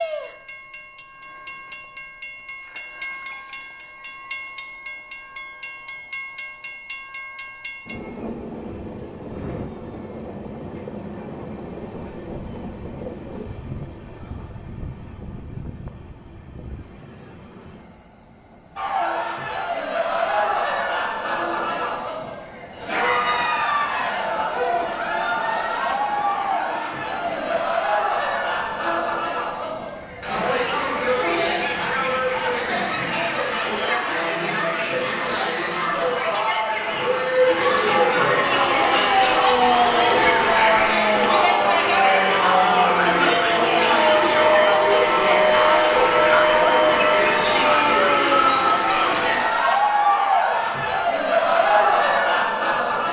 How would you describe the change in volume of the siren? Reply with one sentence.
The volume of the siren stays about the same.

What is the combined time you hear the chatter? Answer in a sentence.
You can hear the chatter for 34 seconds altogether.